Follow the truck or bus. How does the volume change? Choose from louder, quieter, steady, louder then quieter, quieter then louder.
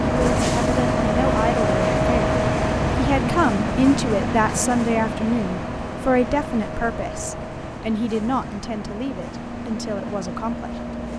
quieter.